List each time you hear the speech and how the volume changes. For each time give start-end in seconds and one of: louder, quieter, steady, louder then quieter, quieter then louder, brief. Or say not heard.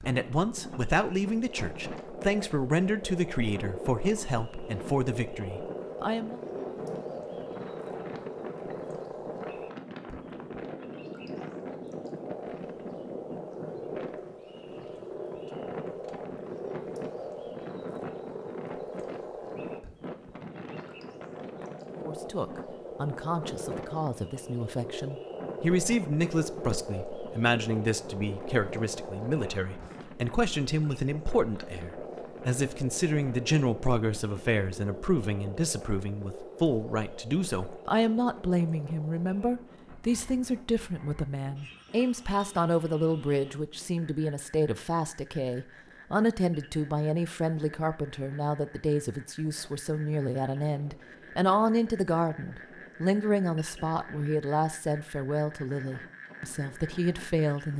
0.0-6.4 steady
22.1-57.7 steady.